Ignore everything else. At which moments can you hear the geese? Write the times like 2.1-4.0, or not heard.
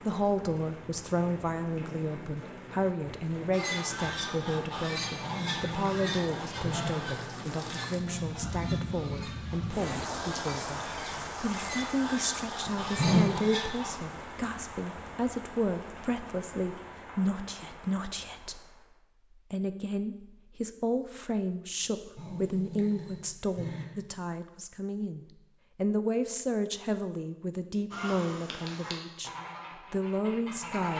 3.5-13.9, 27.9-30.9.